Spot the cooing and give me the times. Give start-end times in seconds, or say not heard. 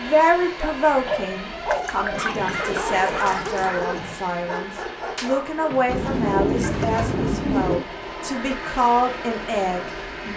1.7-3.7, 5.8-7.8.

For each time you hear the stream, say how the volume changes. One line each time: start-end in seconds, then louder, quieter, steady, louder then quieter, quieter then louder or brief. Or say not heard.
not heard.